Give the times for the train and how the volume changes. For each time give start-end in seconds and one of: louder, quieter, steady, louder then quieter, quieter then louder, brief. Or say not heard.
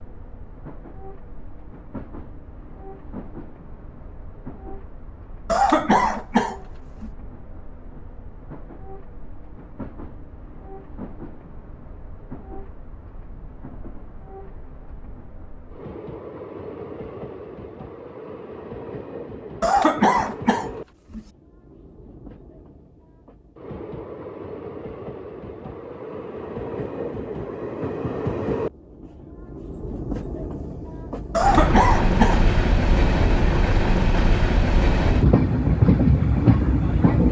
0.0-37.2 louder.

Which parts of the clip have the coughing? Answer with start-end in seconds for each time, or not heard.
5.5-7.1, 19.6-21.2, 31.4-32.5.